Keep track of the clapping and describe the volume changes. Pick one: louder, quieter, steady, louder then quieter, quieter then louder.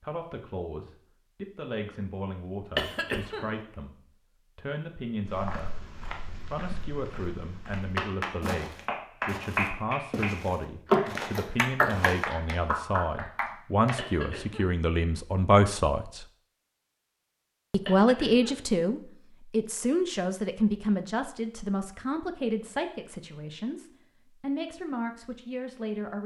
louder then quieter.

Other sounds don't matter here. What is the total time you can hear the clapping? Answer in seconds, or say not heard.
6 s.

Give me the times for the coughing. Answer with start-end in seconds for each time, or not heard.
2.8-3.5, 13.9-14.8, 17.9-18.6.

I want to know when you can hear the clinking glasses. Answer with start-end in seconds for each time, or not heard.
not heard.